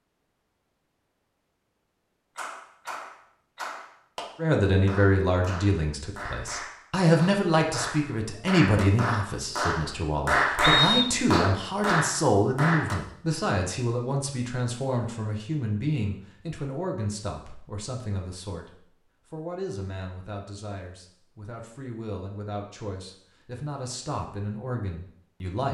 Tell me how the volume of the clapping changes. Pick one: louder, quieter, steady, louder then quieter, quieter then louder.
louder.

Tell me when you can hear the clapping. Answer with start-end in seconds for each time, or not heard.
2.4-12.9.